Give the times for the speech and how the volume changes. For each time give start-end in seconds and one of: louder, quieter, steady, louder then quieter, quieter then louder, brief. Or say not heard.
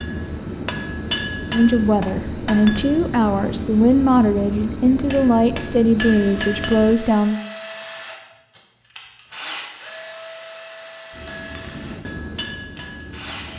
1.5-7.4 steady.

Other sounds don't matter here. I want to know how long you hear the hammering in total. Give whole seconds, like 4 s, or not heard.
9 s.